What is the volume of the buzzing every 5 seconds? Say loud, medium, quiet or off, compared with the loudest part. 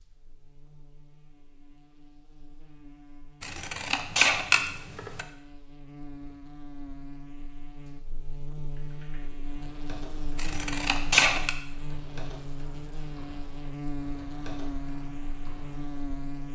quiet, medium, loud, loud.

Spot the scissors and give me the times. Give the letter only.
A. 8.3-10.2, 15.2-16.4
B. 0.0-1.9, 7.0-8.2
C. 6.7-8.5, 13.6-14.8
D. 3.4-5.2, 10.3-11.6
D.